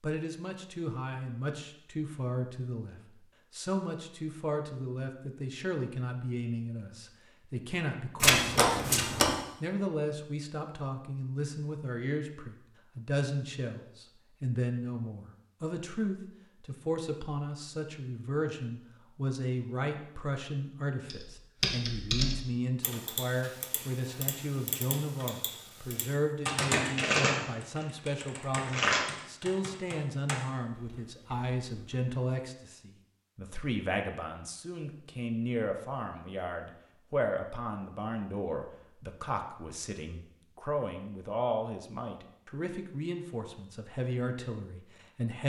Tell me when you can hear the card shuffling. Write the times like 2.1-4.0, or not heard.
8.2-9.3, 26.9-27.9, 28.6-29.1.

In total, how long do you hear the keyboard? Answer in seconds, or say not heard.
11 s.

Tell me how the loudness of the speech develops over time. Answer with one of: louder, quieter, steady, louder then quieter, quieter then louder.
steady.